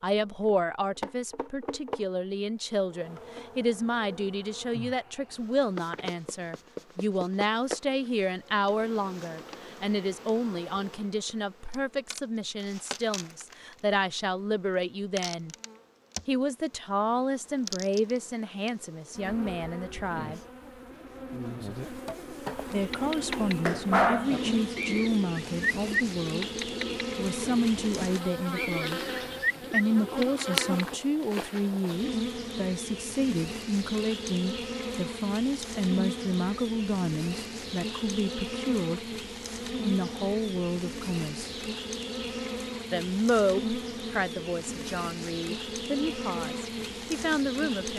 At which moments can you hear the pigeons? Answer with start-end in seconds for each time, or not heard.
22.8-31.0.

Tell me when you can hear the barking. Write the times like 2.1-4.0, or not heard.
22.7-24.4.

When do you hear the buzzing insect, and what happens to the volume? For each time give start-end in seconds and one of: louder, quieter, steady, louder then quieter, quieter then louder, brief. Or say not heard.
0.1-47.9 louder.